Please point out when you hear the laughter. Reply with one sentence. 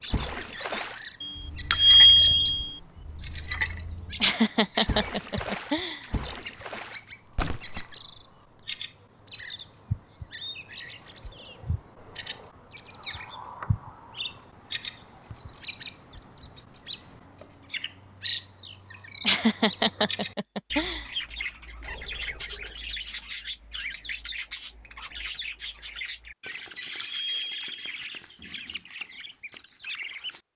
You can hear the laughter from 4.2 to 6.0 s and from 19.2 to 21.1 s.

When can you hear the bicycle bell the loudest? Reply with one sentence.
The volume of the bicycle bell peaks at 2 seconds.